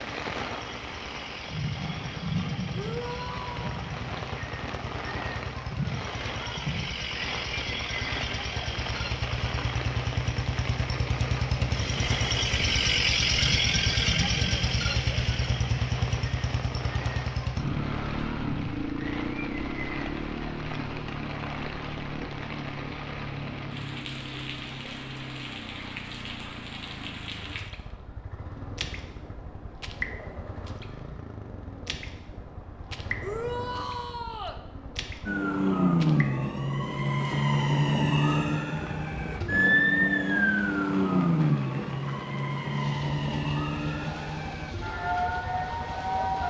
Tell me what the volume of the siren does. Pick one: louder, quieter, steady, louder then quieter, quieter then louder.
quieter.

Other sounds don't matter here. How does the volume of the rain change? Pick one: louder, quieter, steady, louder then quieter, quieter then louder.
quieter.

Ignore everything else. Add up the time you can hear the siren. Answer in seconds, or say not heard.
11 s.